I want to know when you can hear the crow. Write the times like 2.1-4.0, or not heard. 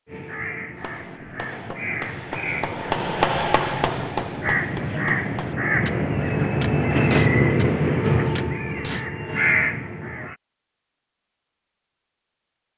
0.1-10.3.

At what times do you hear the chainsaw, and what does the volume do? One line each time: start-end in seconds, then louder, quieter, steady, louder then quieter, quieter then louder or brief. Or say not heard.
not heard.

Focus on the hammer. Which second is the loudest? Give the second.
3 s.